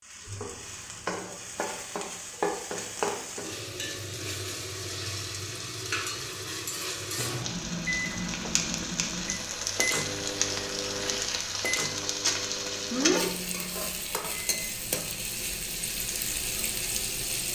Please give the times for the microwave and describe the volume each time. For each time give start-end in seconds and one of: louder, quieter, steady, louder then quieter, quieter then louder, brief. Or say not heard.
7.2-17.4 quieter.